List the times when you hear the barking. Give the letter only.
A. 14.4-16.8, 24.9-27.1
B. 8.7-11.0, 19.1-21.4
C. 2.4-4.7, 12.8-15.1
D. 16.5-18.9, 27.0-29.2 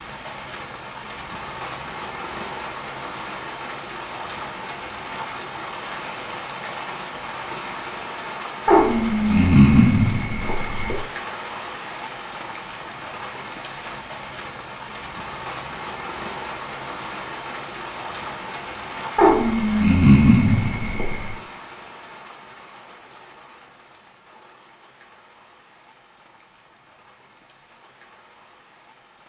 B.